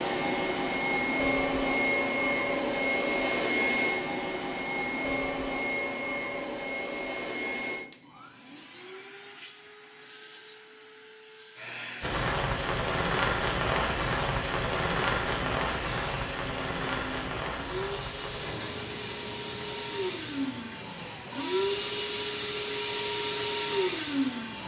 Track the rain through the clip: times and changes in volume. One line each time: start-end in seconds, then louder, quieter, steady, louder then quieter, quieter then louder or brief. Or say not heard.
12.0-24.6 quieter.